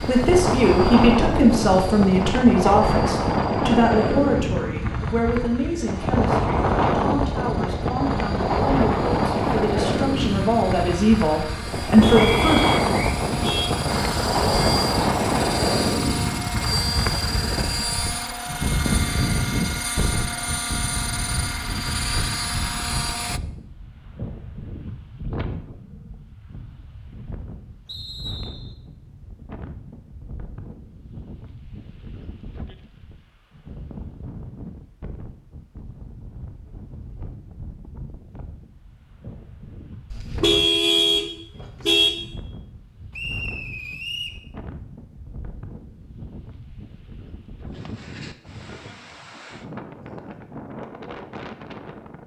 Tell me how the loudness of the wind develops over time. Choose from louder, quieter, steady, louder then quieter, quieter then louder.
quieter.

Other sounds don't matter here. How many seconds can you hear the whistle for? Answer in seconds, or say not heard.
3 s.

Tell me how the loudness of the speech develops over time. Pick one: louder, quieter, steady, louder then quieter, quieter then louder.
quieter then louder.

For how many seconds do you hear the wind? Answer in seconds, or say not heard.
52 s.